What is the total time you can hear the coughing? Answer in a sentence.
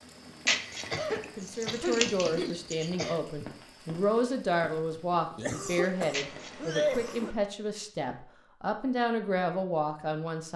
You can hear the coughing for 4 seconds altogether.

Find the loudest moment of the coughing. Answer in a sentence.
The volume of the coughing peaks at 7 seconds.